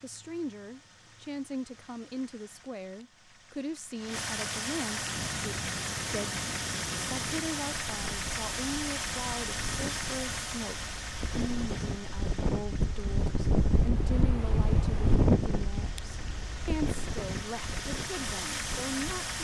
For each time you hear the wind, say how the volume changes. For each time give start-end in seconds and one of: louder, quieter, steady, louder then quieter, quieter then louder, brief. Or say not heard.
4.9-19.3 louder then quieter.